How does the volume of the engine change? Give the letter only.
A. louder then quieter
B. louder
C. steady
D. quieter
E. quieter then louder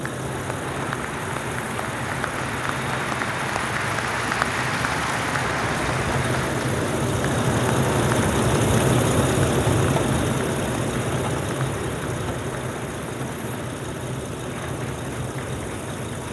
A.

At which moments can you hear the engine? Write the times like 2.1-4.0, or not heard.
0.0-16.2.